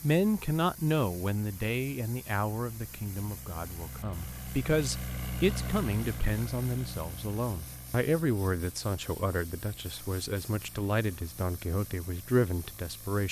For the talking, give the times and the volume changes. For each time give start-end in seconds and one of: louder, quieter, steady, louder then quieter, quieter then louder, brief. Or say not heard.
0.0-13.2 steady.